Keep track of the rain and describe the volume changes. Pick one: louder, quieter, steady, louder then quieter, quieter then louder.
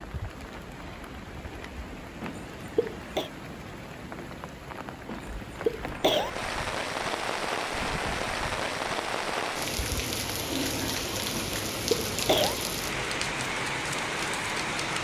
louder.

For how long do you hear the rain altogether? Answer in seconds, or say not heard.
15 s.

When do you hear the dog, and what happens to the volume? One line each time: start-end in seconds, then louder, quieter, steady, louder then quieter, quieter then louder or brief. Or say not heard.
not heard.